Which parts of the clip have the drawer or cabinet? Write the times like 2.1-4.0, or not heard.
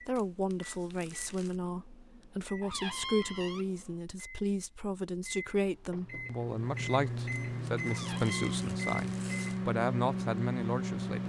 2.6-3.7, 7.8-8.6.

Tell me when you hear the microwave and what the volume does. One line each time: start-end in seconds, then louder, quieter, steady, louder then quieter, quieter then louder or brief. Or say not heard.
0.0-11.2 louder.